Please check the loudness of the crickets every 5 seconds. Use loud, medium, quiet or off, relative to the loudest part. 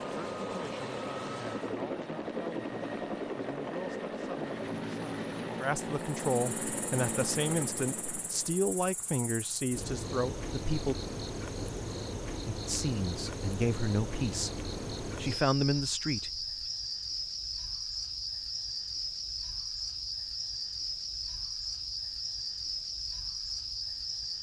off, medium, loud, loud, loud.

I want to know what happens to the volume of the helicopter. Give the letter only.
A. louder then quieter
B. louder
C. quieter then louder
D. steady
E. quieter
D.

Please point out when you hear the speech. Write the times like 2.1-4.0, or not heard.
0.0-10.9, 12.4-16.4.